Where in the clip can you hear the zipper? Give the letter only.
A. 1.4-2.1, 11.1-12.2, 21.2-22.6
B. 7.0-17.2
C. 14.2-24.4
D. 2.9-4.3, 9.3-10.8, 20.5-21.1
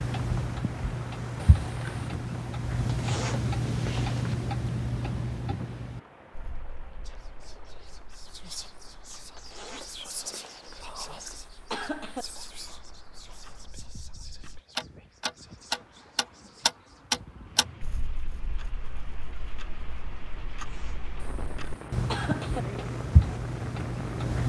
D.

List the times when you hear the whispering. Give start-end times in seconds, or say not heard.
7.0-17.2.